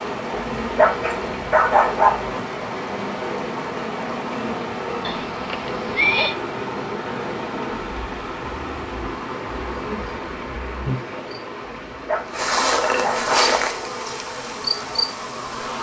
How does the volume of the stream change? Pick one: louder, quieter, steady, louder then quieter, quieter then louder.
quieter.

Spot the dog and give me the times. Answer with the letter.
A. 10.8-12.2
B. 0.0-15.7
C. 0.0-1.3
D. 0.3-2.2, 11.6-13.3
D.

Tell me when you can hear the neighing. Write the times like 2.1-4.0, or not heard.
5.0-6.3.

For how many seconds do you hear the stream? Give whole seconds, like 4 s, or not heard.
16 s.